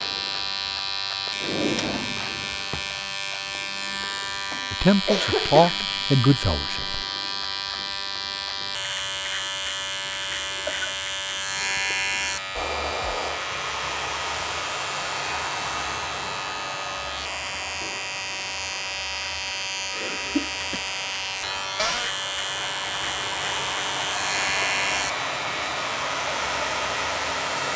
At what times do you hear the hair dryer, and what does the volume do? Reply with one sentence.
You can hear the hair dryer from 12.6 to 27.7 s, getting quieter then louder.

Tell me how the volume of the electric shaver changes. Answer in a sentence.
The volume of the electric shaver stays about the same.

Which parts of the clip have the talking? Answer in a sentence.
You can hear the talking from 4.7 to 7.0 s.